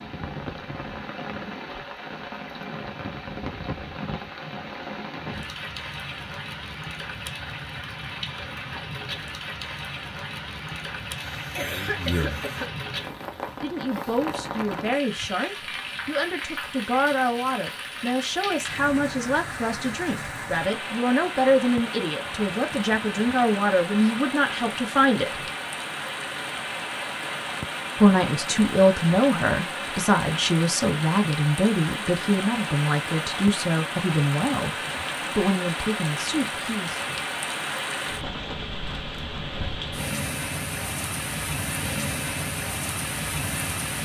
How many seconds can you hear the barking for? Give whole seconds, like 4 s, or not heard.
not heard.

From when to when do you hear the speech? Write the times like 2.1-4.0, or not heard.
11.6-12.4, 13.6-25.4, 27.9-37.1.